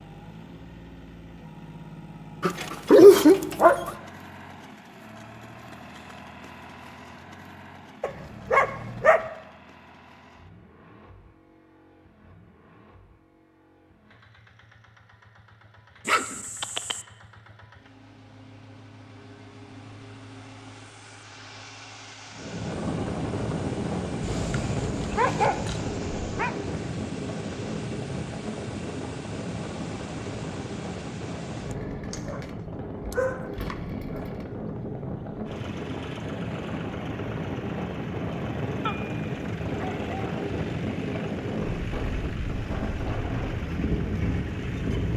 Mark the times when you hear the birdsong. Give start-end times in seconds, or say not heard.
not heard.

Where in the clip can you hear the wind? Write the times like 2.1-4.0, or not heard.
22.3-45.1.